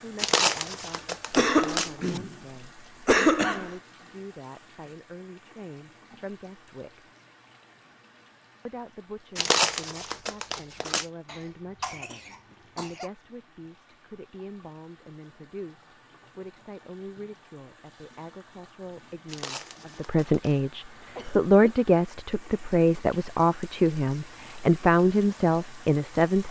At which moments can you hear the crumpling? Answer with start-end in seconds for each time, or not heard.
0.1-2.2, 9.3-11.1, 19.2-20.6.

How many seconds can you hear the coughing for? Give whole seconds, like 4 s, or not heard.
4 s.